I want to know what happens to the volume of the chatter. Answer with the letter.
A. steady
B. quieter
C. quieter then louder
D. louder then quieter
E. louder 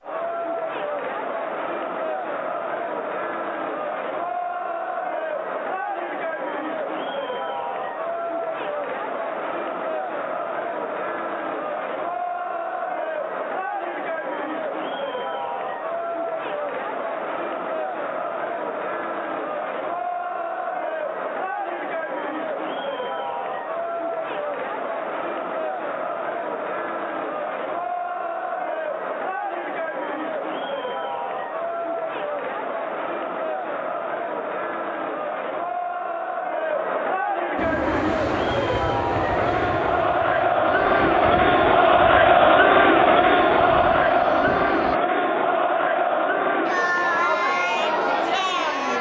E.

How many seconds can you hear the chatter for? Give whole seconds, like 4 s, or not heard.
49 s.